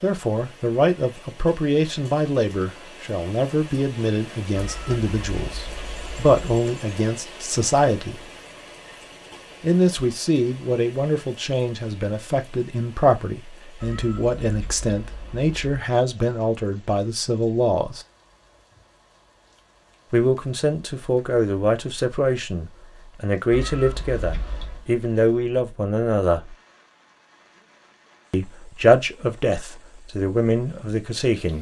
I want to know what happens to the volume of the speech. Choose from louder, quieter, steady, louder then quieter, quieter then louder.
steady.